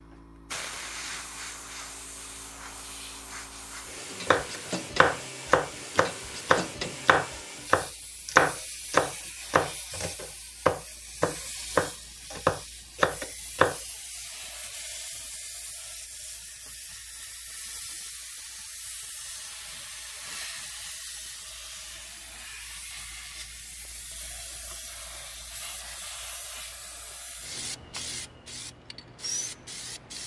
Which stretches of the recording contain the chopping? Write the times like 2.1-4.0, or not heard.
4.2-13.8.